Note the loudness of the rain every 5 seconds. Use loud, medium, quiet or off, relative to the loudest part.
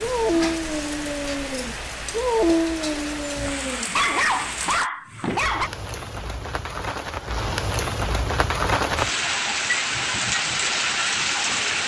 medium, loud, loud.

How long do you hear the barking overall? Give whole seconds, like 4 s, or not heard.
6 s.